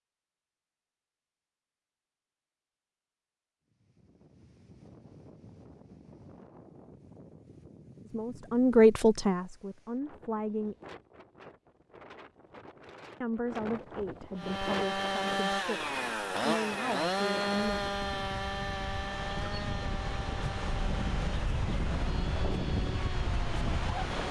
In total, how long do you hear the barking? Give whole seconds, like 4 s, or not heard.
not heard.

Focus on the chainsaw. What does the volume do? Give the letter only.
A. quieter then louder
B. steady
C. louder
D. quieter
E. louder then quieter
D.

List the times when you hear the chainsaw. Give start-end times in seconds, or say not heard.
14.3-24.1.